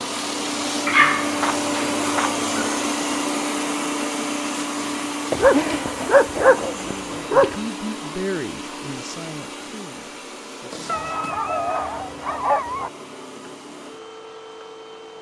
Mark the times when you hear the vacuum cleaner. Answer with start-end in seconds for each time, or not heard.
0.0-15.1.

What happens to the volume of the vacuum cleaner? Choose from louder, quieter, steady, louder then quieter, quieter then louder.
quieter.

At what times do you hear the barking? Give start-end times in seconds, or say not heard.
0.8-2.8, 5.3-7.6, 10.8-12.9.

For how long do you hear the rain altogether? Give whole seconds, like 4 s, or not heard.
not heard.